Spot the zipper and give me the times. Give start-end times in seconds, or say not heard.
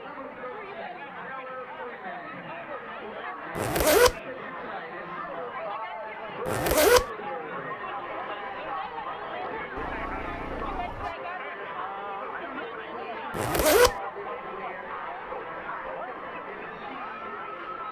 3.5-4.2, 6.5-7.0, 13.3-13.9.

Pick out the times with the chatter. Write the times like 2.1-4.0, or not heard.
0.0-17.8.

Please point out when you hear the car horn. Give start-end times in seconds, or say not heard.
9.8-11.2.